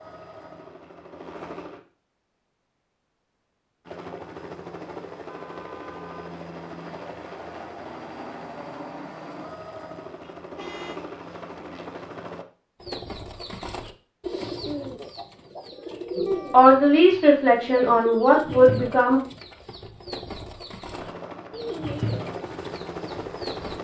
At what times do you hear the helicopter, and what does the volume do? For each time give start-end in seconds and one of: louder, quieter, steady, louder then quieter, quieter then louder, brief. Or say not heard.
0.0-1.8 brief
3.9-12.4 steady
20.9-23.7 brief.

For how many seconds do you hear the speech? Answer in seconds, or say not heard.
3 s.